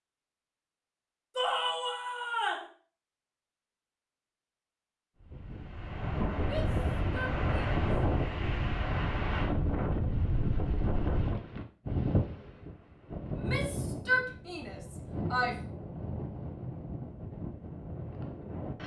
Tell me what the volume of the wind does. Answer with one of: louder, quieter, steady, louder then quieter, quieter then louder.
quieter.